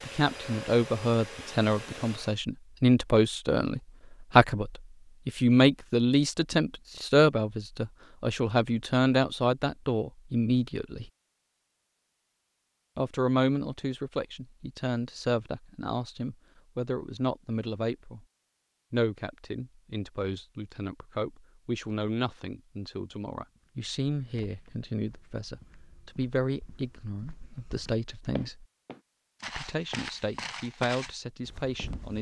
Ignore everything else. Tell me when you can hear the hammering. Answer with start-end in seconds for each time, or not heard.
not heard.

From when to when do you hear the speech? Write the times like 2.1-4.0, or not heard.
0.0-11.1, 12.9-18.2, 18.9-28.6, 29.4-32.1.